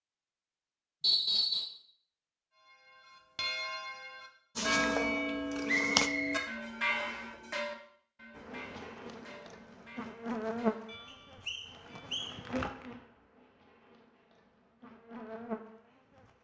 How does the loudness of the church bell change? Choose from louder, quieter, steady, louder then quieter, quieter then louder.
quieter.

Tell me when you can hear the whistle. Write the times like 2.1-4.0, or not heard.
1.0-1.6, 5.7-7.2, 11.1-12.3.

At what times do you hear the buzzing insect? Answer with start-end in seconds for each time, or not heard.
4.5-6.1, 8.3-16.2.